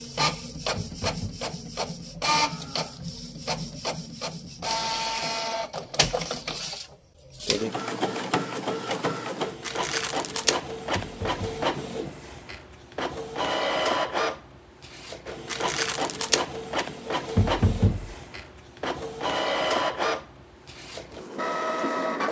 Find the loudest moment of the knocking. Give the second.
18 s.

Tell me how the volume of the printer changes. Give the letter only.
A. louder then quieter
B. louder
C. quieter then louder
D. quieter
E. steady
E.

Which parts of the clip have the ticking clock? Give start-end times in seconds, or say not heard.
not heard.